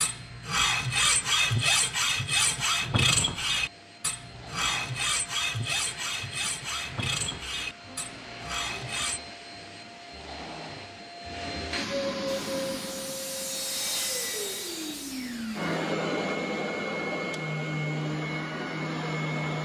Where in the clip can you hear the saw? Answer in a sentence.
You can hear the saw from 0.0 to 9.2 s and from 12.2 to 15.8 s.